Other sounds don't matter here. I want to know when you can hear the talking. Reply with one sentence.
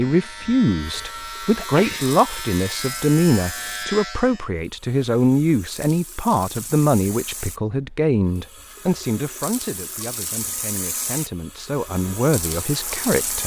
The talking can be heard from 0.0 to 13.4 s.